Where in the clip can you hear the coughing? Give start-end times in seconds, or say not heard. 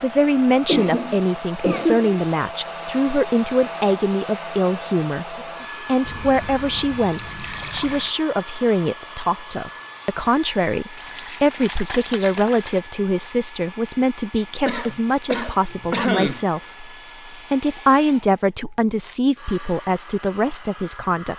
0.1-2.1, 14.7-16.4.